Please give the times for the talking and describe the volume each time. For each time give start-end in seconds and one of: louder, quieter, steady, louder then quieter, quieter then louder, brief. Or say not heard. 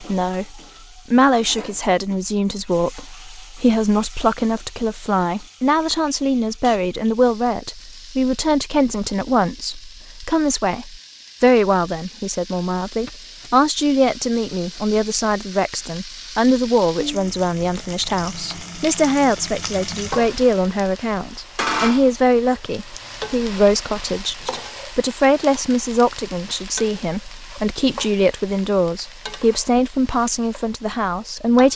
0.0-31.7 steady.